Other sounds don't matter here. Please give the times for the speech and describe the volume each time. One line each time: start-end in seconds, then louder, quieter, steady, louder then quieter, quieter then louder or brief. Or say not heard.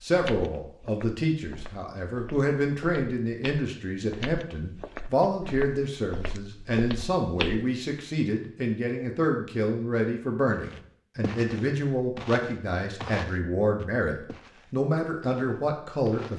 0.0-16.3 steady.